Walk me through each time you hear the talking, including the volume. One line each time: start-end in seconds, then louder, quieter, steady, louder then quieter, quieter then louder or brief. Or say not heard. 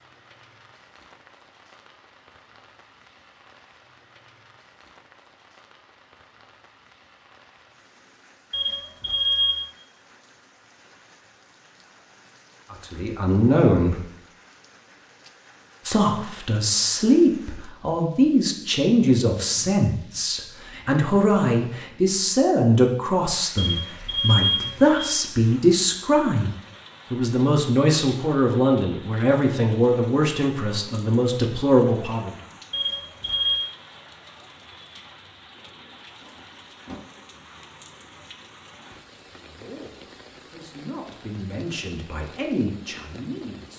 12.7-14.1 brief
15.8-32.4 steady
39.3-43.7 louder.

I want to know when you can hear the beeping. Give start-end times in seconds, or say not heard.
8.5-9.7, 23.6-25.2, 32.7-33.6.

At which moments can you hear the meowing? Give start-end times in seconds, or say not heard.
36.2-37.1.